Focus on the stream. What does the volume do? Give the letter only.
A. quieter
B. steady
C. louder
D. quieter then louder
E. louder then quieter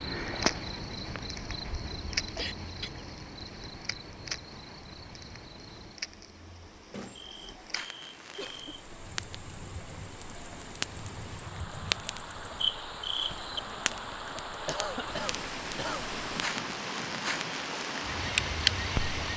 C.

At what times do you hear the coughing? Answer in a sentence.
The coughing can be heard from 2.4 to 3.0 s, from 8.3 to 8.9 s and from 14.7 to 16.1 s.